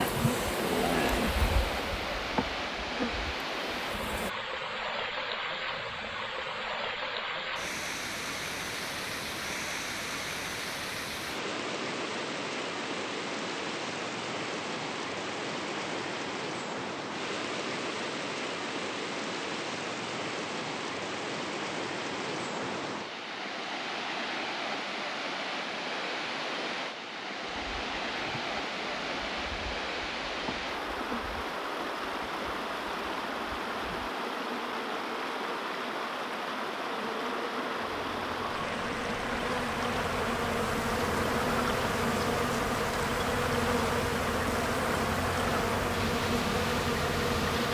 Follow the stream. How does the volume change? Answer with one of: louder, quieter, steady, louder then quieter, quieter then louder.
steady.